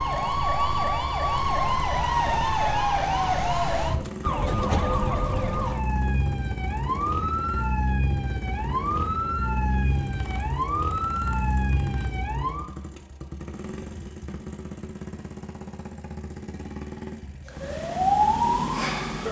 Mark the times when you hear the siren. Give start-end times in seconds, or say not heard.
0.0-12.7, 17.4-19.2.